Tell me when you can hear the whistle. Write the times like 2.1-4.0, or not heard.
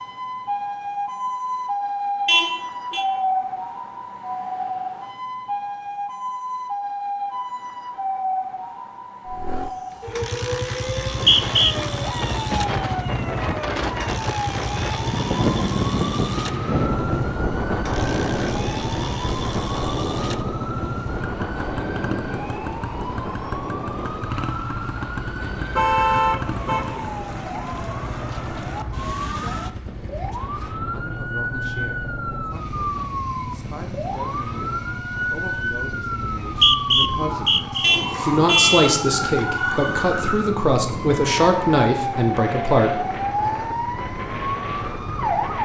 10.8-11.8, 36.2-37.9.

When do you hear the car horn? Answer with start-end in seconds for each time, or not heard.
2.2-3.0, 25.4-26.9, 37.8-38.9.